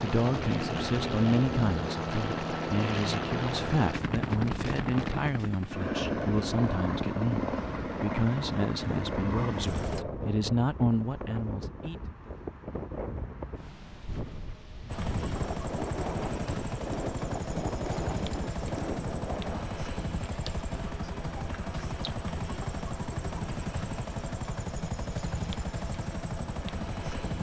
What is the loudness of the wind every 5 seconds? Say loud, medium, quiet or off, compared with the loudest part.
loud, loud, loud, loud, off, off.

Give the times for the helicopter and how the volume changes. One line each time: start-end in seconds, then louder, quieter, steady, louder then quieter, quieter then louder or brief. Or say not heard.
0.0-10.1 steady
14.8-27.3 steady.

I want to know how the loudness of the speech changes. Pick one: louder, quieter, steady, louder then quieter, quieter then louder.
steady.